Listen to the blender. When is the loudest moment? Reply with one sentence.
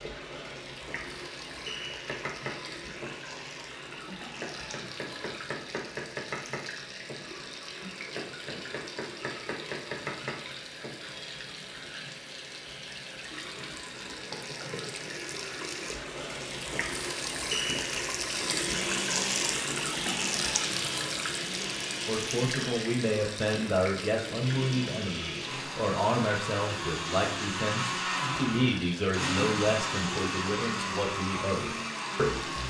The loudest moment of the blender is at 30 seconds.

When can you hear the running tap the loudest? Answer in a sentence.
The loudest moment of the running tap is at 19 seconds.